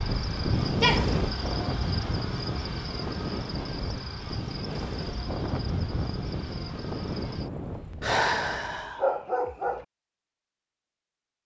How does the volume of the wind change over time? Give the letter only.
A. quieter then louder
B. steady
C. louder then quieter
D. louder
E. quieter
E.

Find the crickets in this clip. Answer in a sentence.
You can hear the crickets from 0.0 to 8.2 s.